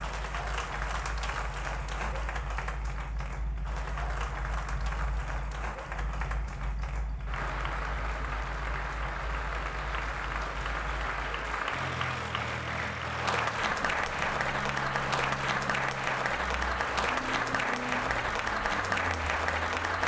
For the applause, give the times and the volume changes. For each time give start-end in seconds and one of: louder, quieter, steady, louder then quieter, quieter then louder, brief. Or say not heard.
0.0-20.0 louder.